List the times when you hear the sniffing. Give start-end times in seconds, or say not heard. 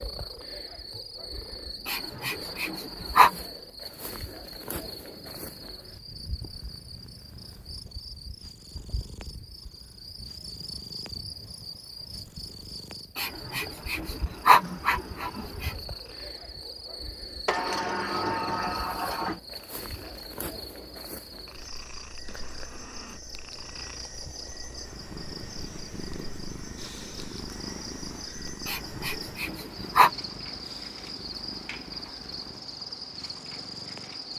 1.9-3.4, 13.2-15.8, 28.6-30.1.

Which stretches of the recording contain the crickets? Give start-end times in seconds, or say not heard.
0.0-34.3.